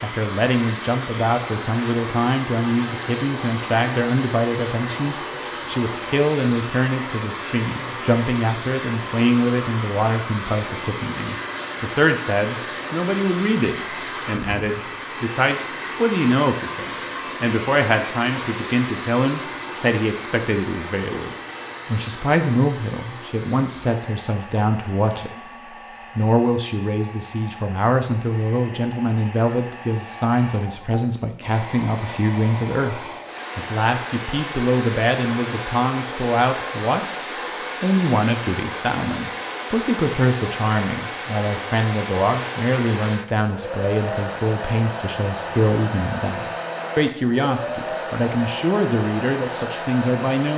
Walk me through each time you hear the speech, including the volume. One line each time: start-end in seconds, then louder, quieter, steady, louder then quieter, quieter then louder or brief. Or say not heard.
0.0-25.4 steady
26.1-37.0 steady
37.8-50.5 steady.